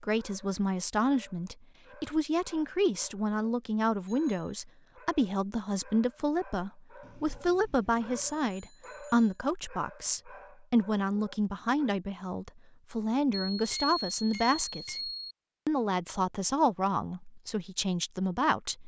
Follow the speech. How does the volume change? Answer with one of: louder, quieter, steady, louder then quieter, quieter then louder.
steady.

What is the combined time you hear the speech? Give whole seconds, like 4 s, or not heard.
19 s.